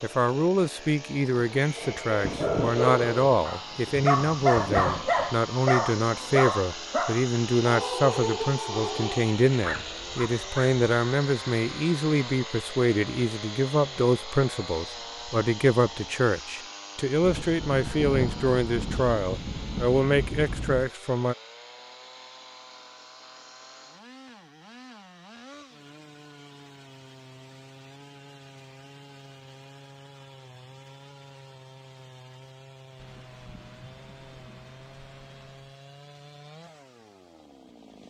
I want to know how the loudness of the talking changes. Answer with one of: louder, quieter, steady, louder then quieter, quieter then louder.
steady.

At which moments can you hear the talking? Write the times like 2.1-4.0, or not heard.
0.0-21.4.